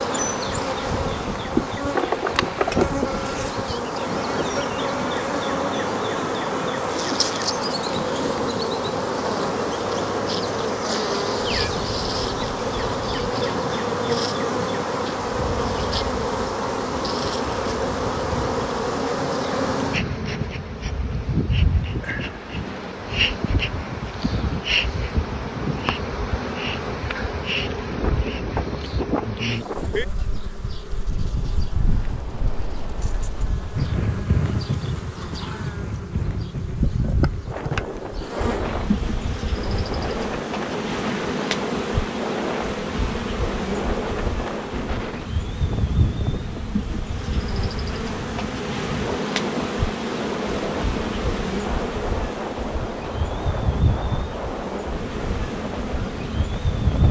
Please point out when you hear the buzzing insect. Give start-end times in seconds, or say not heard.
0.0-57.0.